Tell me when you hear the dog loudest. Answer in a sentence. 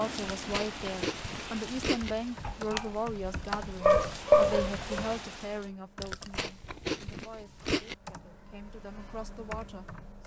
The volume of the dog peaks at 4 seconds.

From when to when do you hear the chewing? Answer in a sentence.
You can hear the chewing from 0.3 to 2.1 s and from 6.0 to 8.0 s.